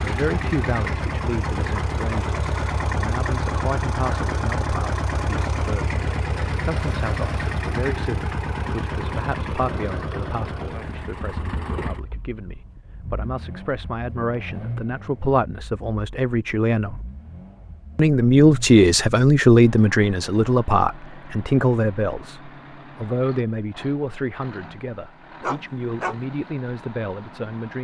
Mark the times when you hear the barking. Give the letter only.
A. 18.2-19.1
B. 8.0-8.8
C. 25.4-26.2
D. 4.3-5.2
C.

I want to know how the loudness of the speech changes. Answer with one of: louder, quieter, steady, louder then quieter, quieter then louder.
louder then quieter.